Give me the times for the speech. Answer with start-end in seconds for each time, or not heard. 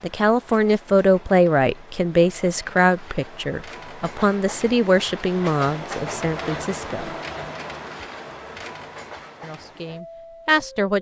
0.0-7.1, 9.4-10.9.